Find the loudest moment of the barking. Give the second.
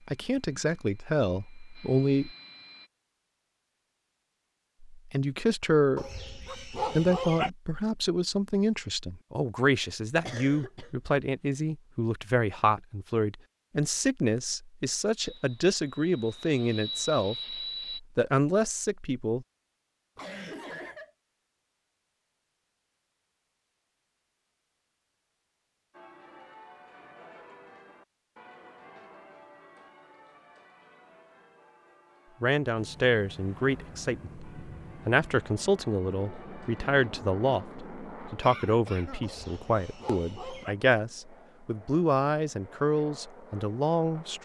7 s.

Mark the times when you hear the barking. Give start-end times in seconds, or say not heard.
6.0-7.5, 39.2-40.8.